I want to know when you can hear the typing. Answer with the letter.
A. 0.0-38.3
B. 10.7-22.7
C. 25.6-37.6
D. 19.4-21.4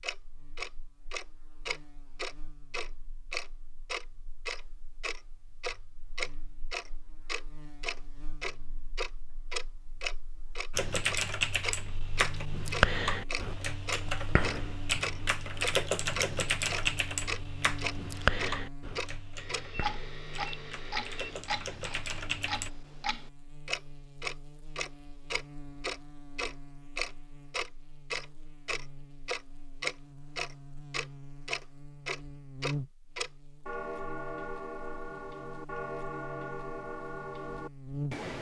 B.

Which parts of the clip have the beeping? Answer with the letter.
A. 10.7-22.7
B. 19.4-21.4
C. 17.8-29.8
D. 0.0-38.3
B.